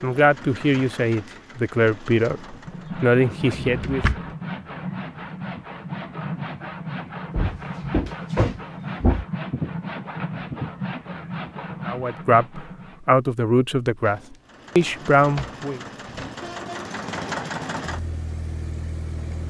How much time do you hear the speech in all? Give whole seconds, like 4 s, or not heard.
8 s.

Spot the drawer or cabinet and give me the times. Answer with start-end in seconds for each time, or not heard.
3.4-4.3, 7.3-9.2, 14.1-16.5.